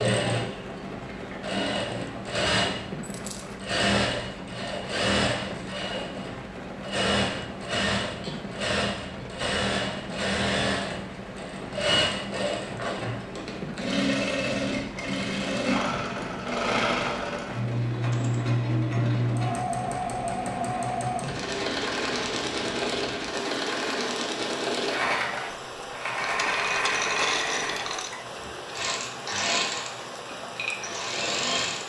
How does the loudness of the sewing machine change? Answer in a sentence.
The volume of the sewing machine stays about the same.